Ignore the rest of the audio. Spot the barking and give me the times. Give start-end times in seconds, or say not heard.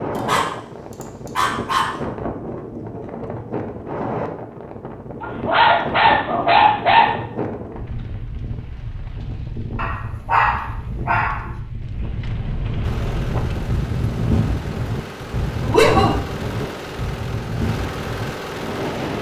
0.1-1.9, 5.2-7.1, 9.8-11.3, 15.6-16.6.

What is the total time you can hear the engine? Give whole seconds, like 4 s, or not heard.
6 s.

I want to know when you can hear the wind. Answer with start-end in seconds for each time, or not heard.
0.0-19.1.